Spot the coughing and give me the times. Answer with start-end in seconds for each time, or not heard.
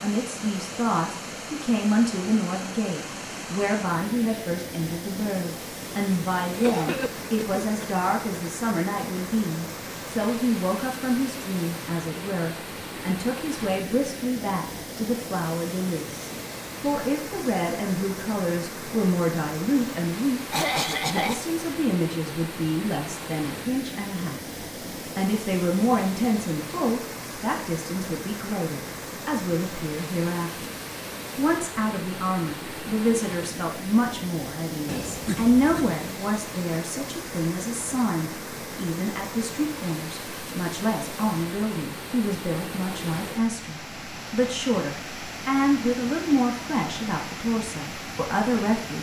6.5-7.8, 20.5-21.4, 34.9-36.0.